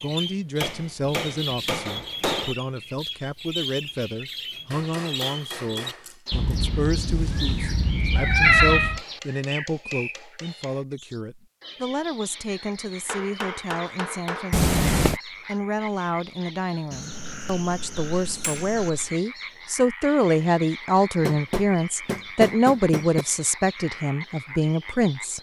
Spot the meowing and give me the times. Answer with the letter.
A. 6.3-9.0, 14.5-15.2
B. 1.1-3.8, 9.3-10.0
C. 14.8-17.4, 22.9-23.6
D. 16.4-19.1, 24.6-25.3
A.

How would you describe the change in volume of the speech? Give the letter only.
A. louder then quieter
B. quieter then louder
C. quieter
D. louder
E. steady
D.